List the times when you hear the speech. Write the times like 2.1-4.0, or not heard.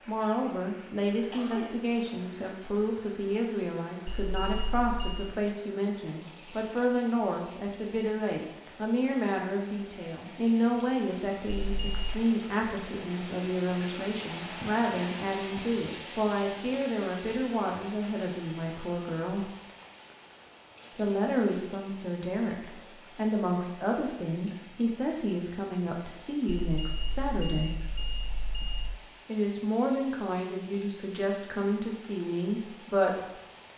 0.1-19.5, 20.9-27.8, 29.2-33.2.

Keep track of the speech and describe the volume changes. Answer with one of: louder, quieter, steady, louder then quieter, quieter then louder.
steady.